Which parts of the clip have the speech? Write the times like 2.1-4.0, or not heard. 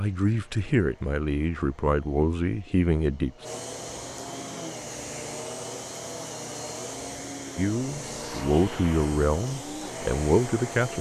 0.0-3.3, 7.5-10.9.